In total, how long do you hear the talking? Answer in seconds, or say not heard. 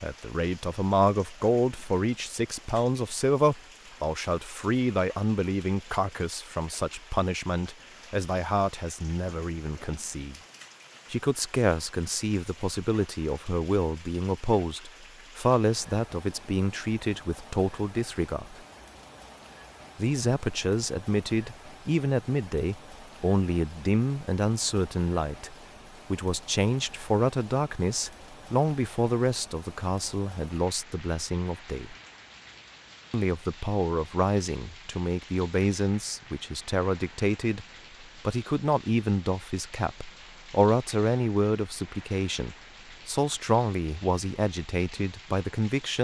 42 s.